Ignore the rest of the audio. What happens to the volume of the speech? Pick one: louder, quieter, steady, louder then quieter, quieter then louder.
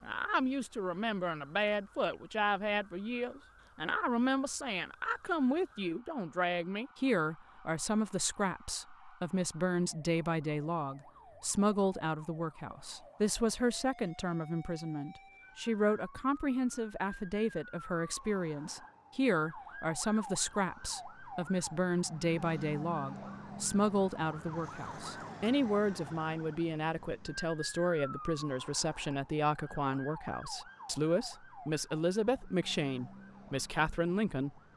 steady.